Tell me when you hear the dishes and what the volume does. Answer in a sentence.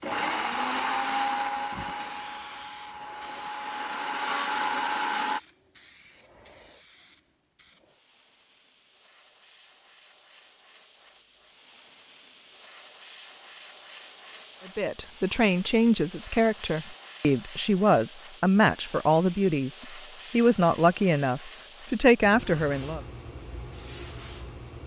You can't hear the dishes here.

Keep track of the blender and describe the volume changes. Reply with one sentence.
The loudness of the blender goes down, then up.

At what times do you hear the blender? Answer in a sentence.
You can hear the blender from 0.0 to 5.4 s.